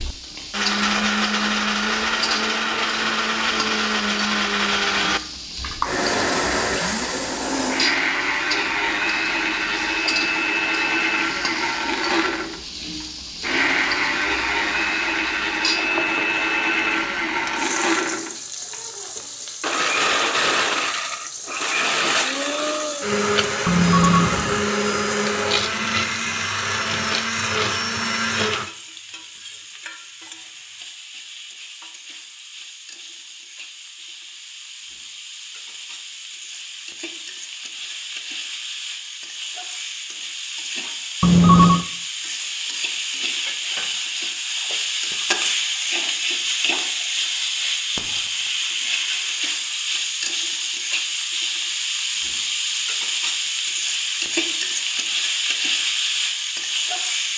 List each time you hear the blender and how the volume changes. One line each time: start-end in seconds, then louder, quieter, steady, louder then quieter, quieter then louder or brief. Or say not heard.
0.0-28.7 steady.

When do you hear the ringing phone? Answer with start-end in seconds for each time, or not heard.
23.6-24.6, 41.2-41.9.